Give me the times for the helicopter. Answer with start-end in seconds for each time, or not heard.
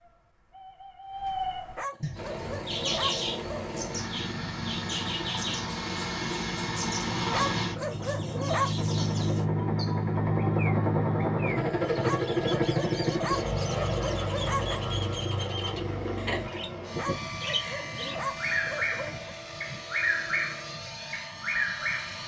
2.1-22.2.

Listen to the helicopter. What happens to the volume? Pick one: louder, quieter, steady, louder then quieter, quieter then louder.
louder then quieter.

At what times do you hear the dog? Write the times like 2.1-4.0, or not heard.
1.8-3.8, 7.3-8.8, 12.0-14.8, 16.9-19.4.